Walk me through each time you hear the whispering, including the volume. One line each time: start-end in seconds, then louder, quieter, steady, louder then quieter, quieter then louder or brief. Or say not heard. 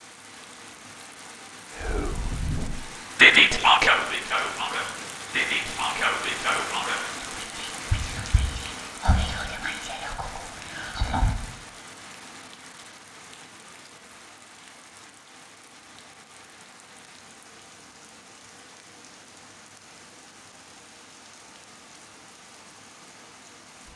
1.8-11.4 quieter.